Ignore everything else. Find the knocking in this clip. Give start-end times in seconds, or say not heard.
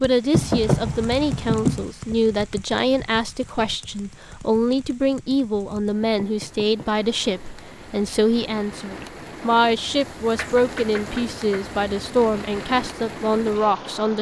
0.3-1.9, 6.0-7.0, 10.3-11.8.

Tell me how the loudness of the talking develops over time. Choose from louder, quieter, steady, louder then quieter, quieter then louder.
steady.